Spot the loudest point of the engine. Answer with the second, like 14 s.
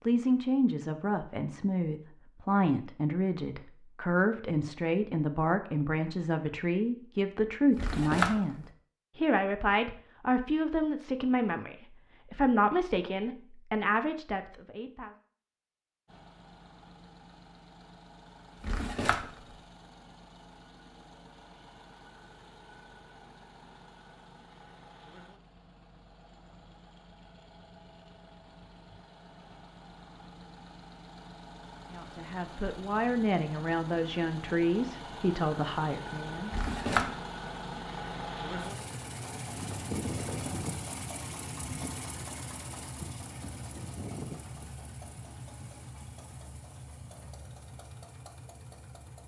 40 s.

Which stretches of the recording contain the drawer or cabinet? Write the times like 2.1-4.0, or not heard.
7.7-8.6, 18.6-19.5, 36.5-37.1.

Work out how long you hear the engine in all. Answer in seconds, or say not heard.
33 s.